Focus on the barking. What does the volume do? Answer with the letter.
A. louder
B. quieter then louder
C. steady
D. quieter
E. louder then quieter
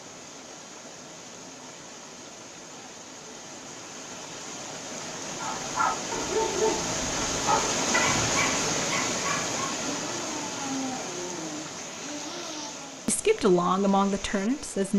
D.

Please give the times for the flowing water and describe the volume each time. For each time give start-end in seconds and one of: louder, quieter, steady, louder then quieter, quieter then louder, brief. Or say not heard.
0.0-14.9 louder then quieter.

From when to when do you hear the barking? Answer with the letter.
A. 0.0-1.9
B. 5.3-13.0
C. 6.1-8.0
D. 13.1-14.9
B.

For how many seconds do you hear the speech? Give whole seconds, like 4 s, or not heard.
2 s.